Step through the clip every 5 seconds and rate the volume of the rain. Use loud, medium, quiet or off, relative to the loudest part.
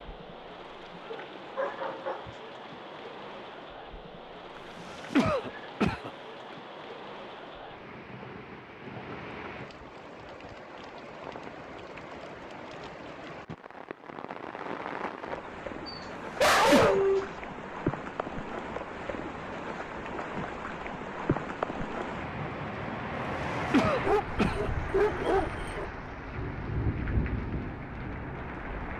medium, medium, medium, loud, loud, loud.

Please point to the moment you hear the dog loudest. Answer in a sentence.
The loudest moment of the dog is at 17 seconds.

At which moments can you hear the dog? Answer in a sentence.
You can hear the dog from 1.1 to 2.3 s, from 15.8 to 17.3 s and from 24.0 to 25.9 s.